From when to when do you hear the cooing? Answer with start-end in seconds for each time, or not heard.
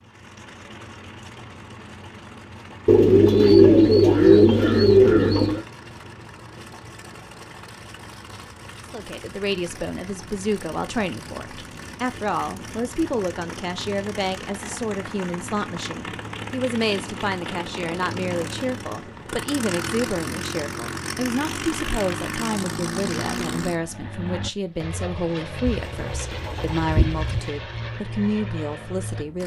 2.9-5.7, 25.6-27.4.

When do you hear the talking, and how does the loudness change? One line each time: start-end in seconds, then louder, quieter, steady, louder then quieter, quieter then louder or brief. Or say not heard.
8.9-29.4 steady.